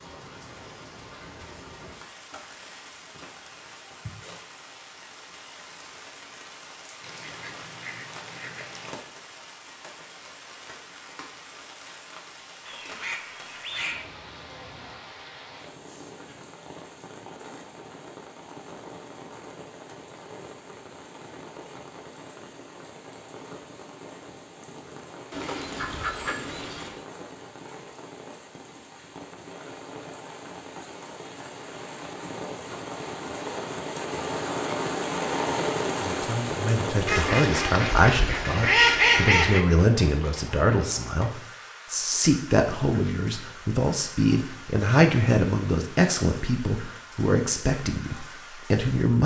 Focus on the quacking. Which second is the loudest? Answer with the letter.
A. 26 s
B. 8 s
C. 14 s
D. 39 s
D.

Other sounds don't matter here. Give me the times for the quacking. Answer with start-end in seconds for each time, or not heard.
7.0-9.1, 12.6-14.1, 25.3-27.0, 37.0-39.6.